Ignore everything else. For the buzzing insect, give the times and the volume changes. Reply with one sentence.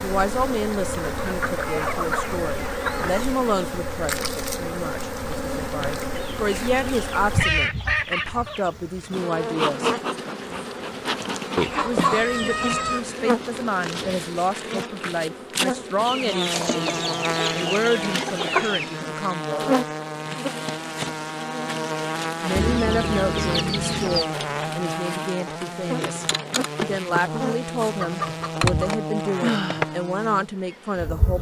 The buzzing insect can be heard from 0.0 to 31.3 s, at a steady volume.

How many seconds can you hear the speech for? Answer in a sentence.
You can hear the speech for 27 seconds altogether.